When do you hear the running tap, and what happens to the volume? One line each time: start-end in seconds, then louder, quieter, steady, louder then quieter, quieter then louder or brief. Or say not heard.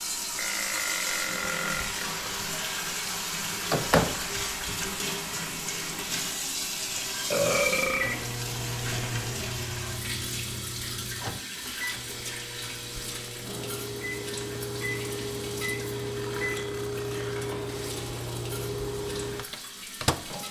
0.0-20.4 quieter.